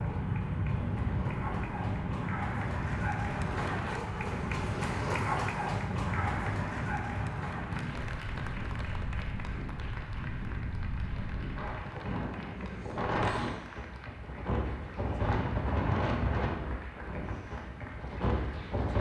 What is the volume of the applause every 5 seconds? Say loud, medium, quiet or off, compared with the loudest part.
loud, loud, medium, medium.